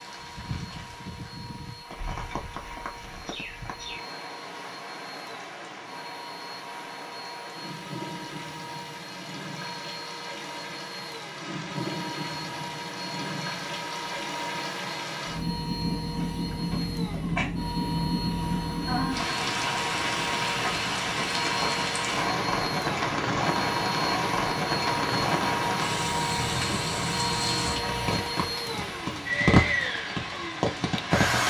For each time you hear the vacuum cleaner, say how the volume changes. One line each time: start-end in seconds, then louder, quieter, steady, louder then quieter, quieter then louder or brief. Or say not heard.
0.0-31.4 louder.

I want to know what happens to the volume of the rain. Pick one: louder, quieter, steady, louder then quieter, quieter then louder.
louder.